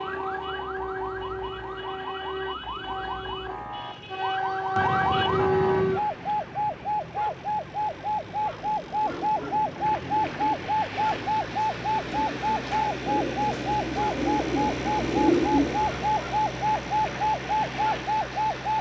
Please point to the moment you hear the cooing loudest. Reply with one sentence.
The loudest moment of the cooing is at 15 seconds.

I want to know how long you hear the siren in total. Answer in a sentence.
The siren can be heard for 19 seconds in total.